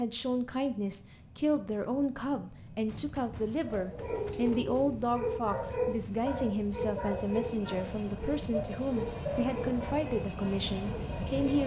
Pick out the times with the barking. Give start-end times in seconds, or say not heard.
3.6-11.4.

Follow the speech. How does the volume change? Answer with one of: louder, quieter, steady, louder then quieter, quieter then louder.
steady.